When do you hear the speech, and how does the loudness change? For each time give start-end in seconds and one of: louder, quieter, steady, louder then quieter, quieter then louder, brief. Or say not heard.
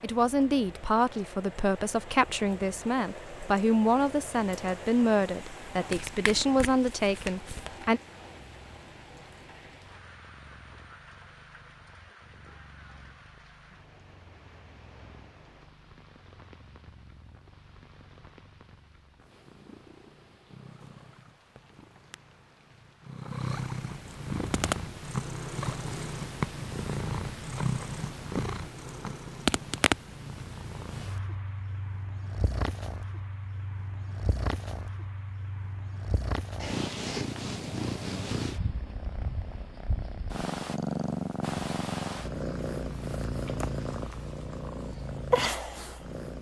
0.0-8.0 steady.